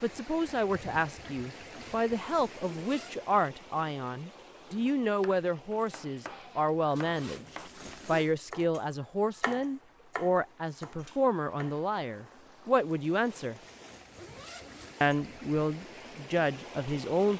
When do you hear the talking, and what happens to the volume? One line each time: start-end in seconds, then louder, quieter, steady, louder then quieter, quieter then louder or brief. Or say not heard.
0.0-7.5 steady
8.1-13.6 steady
15.0-17.3 brief.